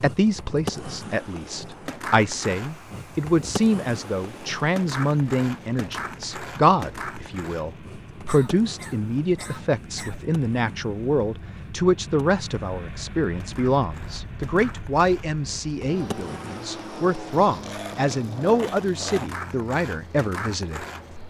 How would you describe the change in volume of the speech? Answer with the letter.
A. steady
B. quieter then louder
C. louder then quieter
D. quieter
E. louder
A.